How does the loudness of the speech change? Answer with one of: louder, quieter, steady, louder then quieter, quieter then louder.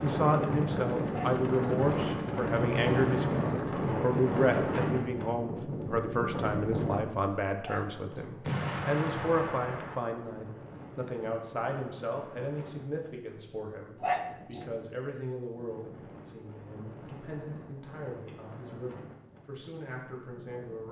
quieter.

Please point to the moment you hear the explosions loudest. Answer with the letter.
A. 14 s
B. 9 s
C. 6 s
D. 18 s
B.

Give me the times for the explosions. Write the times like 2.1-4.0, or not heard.
8.4-9.9.